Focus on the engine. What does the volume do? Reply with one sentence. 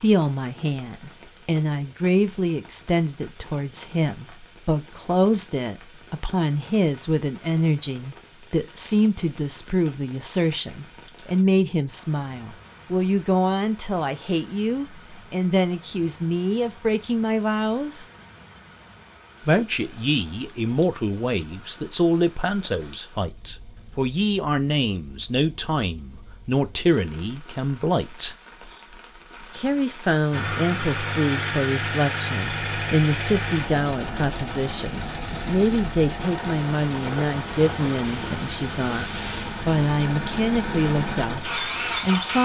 The loudness of the engine goes down, then up.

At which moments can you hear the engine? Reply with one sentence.
The engine can be heard from 30.3 to 42.4 s.